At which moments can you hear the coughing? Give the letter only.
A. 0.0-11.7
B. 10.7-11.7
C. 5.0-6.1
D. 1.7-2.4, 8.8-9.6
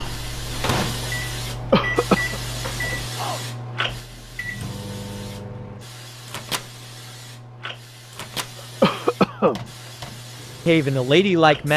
D.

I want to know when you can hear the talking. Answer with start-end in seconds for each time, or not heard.
10.7-11.7.